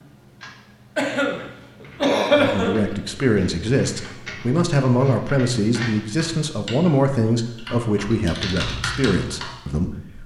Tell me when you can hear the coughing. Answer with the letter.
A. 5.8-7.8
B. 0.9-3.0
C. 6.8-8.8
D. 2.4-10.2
B.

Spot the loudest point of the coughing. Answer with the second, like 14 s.
2 s.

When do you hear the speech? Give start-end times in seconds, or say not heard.
2.4-10.2.